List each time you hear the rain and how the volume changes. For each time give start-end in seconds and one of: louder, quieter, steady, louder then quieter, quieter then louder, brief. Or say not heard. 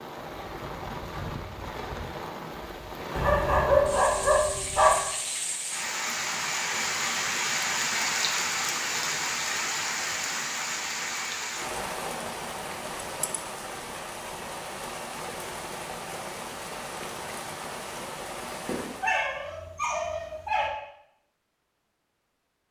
0.0-19.2 louder then quieter.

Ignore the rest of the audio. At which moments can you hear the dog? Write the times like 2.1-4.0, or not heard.
3.1-5.0, 18.6-20.7.